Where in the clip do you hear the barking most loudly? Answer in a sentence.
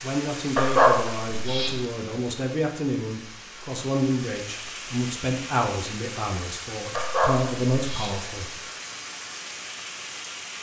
The loudest moment of the barking is at 1 second.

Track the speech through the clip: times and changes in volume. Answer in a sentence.
You can hear the speech from 0.0 to 8.6 s, at a steady volume.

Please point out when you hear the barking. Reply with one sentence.
The barking can be heard from 0.6 to 1.8 s and from 6.9 to 8.2 s.